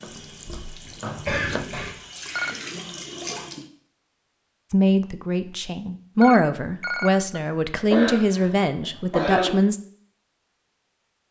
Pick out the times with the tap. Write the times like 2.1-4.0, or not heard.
0.0-3.6.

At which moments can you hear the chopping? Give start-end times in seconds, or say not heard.
0.0-1.7.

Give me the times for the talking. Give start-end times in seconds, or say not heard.
4.7-9.8.